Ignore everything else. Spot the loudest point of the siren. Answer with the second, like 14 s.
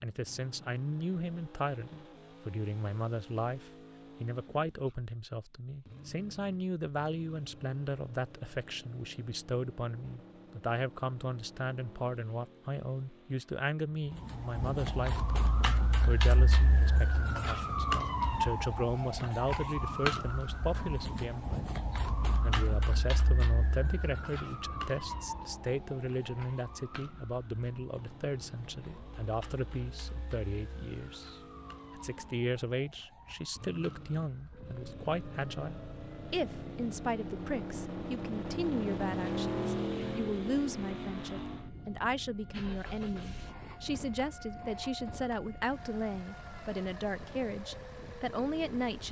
18 s.